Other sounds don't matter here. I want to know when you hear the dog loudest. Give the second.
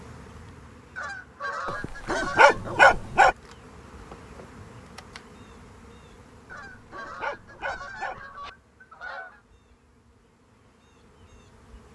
3 s.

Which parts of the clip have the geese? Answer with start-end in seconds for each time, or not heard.
0.9-2.6, 6.5-9.4.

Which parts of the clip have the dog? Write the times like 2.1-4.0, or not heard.
1.6-3.4, 6.5-8.5.